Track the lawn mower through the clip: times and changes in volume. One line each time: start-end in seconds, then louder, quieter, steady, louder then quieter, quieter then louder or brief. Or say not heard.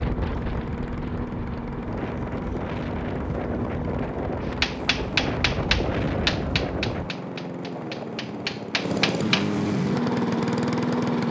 0.0-11.2 louder.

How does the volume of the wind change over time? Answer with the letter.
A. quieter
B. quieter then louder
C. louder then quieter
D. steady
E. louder
E.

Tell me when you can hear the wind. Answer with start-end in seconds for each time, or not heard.
0.0-7.1.